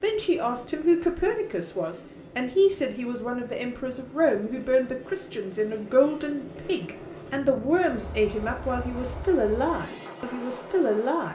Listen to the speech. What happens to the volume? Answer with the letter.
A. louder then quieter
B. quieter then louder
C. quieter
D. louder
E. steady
E.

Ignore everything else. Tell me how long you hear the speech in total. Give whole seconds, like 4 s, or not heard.
11 s.